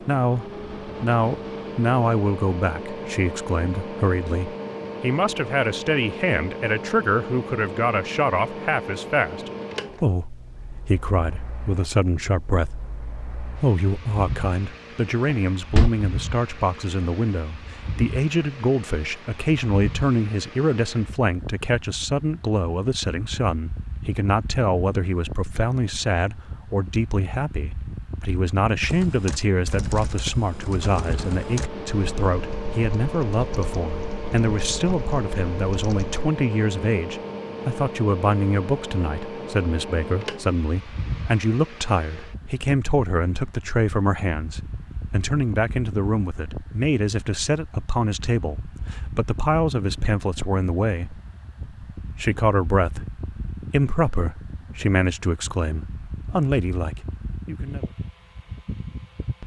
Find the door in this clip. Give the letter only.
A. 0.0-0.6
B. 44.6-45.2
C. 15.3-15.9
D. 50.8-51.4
C.